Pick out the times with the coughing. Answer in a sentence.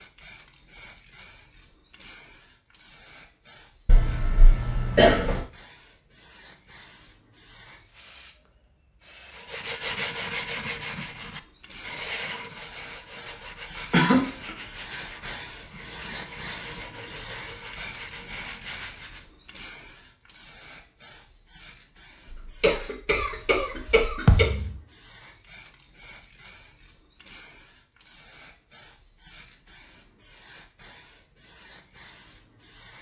You can hear the coughing from 3.9 to 5.4 s, from 13.9 to 14.5 s and from 22.3 to 24.4 s.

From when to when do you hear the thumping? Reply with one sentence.
You can hear the thumping from 24.2 to 24.8 s.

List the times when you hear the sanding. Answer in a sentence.
The sanding can be heard from 9.3 to 19.2 s.